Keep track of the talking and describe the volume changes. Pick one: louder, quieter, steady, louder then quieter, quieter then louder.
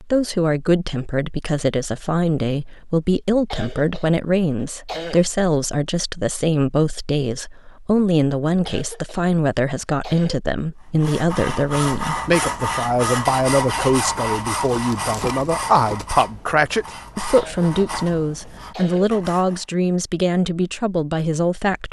steady.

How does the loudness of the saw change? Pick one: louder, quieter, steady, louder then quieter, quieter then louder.
quieter.